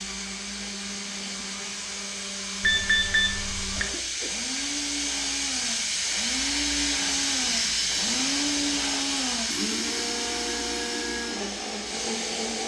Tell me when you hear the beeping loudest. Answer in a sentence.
The volume of the beeping peaks at 3 seconds.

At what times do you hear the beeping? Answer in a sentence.
The beeping can be heard from 2.6 to 3.9 s and from 7.3 to 8.3 s.